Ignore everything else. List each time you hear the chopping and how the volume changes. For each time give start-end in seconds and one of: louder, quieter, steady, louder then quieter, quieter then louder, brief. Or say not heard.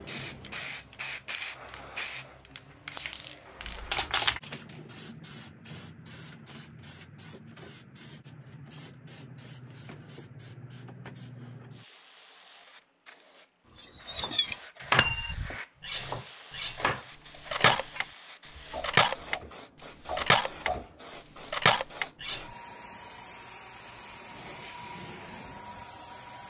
14.1-20.9 quieter.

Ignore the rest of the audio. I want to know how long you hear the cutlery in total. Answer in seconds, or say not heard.
9 s.